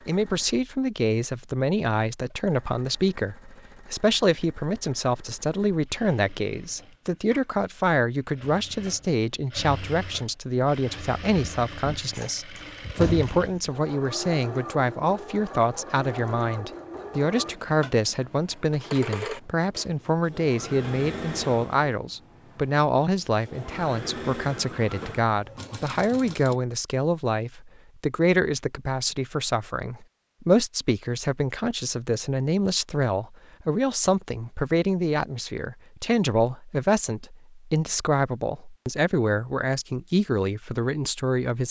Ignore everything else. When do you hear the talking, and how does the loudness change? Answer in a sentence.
The talking can be heard from 0.1 to 41.6 s, at a steady volume.